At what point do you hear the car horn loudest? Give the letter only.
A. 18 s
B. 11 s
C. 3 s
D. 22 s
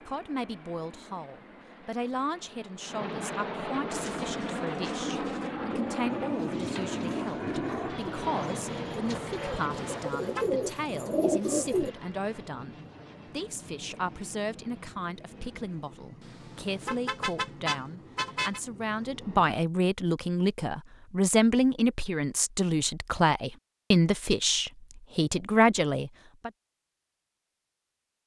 A.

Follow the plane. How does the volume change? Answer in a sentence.
The loudness of the plane goes up, then down.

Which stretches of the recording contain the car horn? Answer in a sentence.
The car horn can be heard from 9.7 to 10.4 s and from 16.2 to 18.6 s.